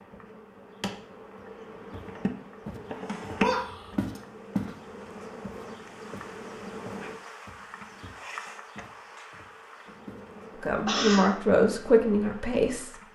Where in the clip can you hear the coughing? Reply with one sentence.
You can hear the coughing from 3.4 to 4.2 s and from 10.8 to 11.3 s.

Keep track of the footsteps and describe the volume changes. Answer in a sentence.
The loudness of the footsteps goes up, then down.